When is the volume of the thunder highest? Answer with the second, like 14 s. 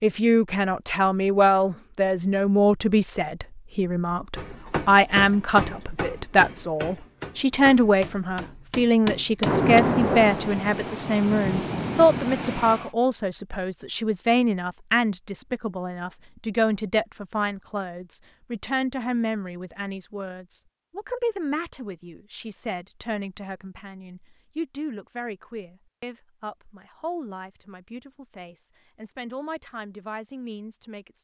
10 s.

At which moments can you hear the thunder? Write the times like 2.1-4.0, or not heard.
9.4-12.9.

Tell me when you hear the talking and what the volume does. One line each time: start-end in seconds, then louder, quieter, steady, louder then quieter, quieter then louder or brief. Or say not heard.
0.0-31.1 quieter.